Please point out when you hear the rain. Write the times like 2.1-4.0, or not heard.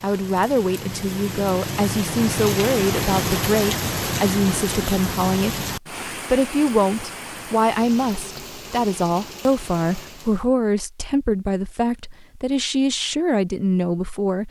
0.0-10.5.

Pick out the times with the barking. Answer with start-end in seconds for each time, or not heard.
not heard.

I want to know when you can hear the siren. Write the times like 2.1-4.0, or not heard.
not heard.